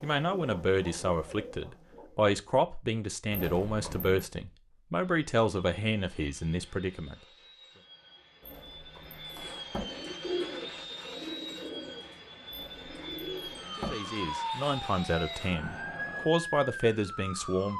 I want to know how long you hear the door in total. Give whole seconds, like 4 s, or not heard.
4 s.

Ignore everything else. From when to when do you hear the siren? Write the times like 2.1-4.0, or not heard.
13.8-17.7.